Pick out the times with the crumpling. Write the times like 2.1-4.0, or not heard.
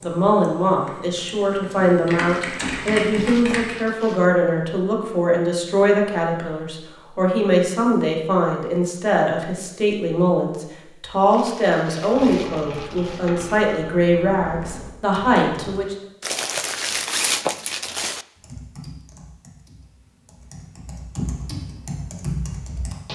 2.2-4.3, 11.3-13.3, 16.2-18.2.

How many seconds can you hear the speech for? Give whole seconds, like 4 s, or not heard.
16 s.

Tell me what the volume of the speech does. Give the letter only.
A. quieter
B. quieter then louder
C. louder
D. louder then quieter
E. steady
E.